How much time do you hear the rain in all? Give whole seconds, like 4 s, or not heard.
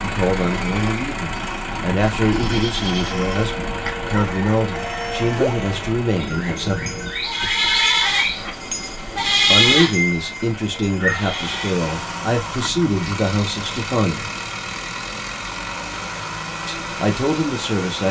not heard.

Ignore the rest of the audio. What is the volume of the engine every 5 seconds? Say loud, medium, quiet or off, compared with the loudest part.
loud, medium, loud, loud.